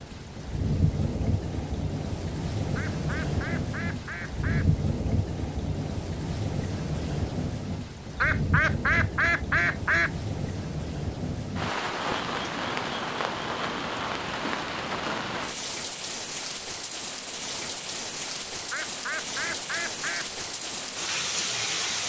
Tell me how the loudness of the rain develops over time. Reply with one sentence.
The loudness of the rain stays about the same.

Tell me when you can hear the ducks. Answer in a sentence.
You can hear the ducks from 2.8 to 4.7 s, from 8.2 to 10.1 s and from 18.7 to 20.3 s.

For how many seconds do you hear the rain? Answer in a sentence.
The rain can be heard for 22 seconds in total.